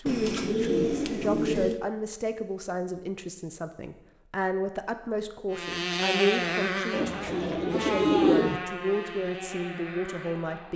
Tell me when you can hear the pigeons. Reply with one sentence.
You can hear the pigeons from 0.1 to 1.8 s and from 6.9 to 8.6 s.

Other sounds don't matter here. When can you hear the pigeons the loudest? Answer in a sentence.
The volume of the pigeons peaks at 8 seconds.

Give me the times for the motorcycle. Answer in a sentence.
You can hear the motorcycle from 5.5 to 10.7 s.